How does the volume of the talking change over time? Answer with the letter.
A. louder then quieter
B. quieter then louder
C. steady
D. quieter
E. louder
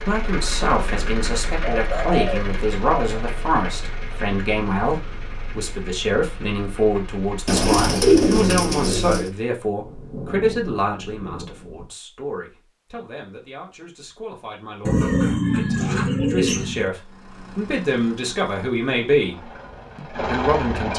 B.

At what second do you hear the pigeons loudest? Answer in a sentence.
The loudest moment of the pigeons is at 8 seconds.